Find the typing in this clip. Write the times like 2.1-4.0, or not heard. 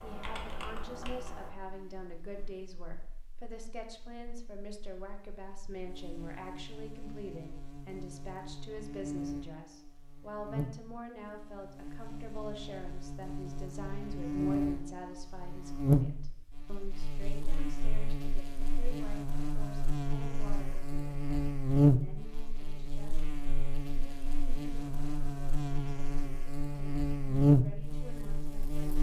0.0-1.6.